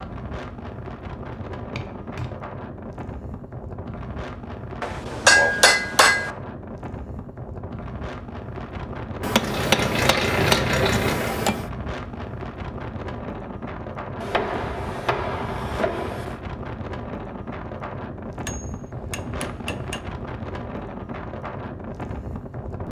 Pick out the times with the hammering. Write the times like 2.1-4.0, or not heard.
1.6-2.4, 4.8-6.3, 9.2-11.7, 14.2-16.4, 18.4-20.0.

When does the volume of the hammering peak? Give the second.
5 s.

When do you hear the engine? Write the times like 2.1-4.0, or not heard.
9.3-11.4.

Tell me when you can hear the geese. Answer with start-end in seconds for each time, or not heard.
not heard.